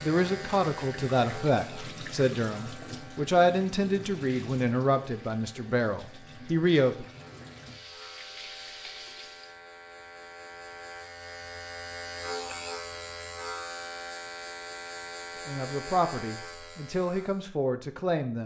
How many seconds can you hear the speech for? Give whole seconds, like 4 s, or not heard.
10 s.